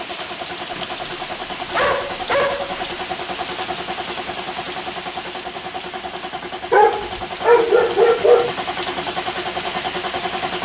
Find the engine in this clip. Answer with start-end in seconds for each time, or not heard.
0.0-10.6.